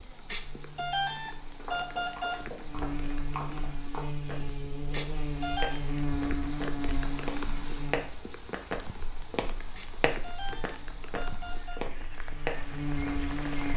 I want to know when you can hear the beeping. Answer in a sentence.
The beeping can be heard from 0.3 to 2.4 s, from 4.9 to 5.8 s and from 9.8 to 11.8 s.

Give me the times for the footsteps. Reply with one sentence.
You can hear the footsteps from 1.6 to 13.3 s.